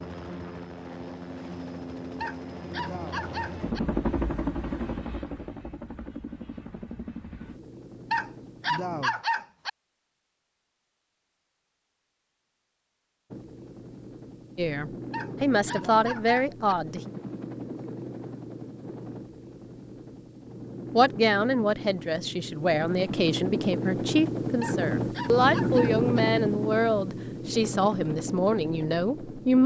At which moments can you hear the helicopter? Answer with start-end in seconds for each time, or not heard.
0.0-9.1, 13.3-29.6.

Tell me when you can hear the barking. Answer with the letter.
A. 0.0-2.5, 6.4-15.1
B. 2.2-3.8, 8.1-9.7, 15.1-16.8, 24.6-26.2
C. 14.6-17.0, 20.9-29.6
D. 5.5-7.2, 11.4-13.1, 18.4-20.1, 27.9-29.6
B.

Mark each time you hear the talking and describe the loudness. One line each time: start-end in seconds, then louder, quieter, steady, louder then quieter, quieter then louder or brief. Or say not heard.
14.6-17.0 brief
20.9-29.6 steady.